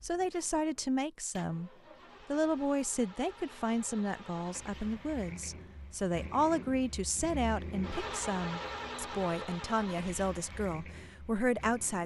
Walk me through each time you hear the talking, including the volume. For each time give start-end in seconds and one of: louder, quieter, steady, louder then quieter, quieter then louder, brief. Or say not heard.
0.0-12.0 steady.